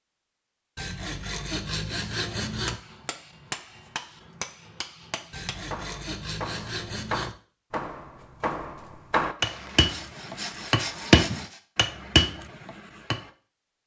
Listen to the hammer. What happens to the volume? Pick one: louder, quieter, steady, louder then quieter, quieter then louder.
louder.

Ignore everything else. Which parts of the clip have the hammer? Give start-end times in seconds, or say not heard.
2.5-13.3.